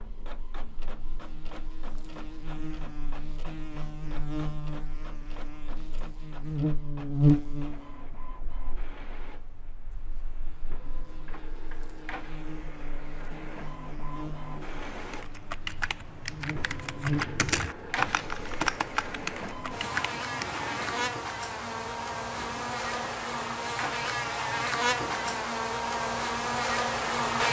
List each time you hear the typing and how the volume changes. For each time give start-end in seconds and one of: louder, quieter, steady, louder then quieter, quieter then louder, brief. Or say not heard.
15.1-20.6 louder then quieter.